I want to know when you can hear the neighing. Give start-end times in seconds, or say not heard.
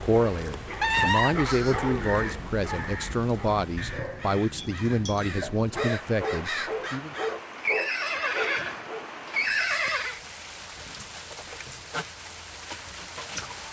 0.8-2.1, 7.5-10.2.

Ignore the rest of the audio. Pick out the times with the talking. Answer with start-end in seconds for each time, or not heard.
0.0-7.2.